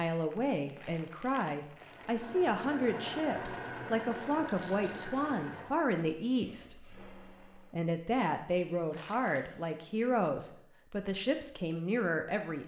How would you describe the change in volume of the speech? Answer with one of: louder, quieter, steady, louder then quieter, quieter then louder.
steady.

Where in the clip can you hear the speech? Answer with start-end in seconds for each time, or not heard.
0.0-12.6.